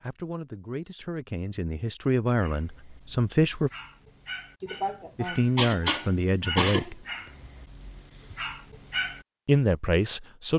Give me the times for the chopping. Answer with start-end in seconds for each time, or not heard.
not heard.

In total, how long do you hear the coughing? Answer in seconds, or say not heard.
2 s.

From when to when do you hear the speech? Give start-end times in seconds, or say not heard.
0.0-3.7, 5.2-7.0, 9.4-10.5.